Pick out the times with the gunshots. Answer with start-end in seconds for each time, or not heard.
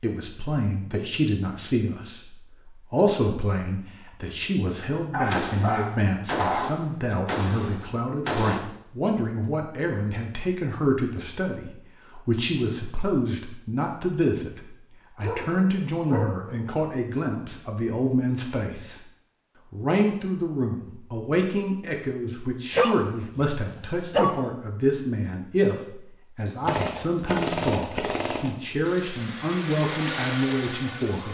5.2-8.6, 26.6-28.6.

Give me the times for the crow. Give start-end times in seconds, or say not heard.
not heard.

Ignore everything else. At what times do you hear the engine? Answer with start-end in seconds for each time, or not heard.
28.8-31.3.